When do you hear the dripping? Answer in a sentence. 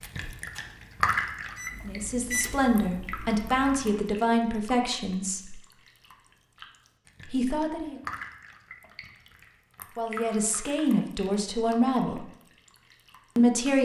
You can hear the dripping from 0.0 to 13.8 s.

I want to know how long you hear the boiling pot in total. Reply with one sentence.
The boiling pot can't be heard in this clip.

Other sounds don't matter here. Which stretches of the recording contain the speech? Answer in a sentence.
The speech can be heard from 1.9 to 5.5 s, from 7.2 to 8.0 s, from 9.9 to 12.2 s and from 13.3 to 13.8 s.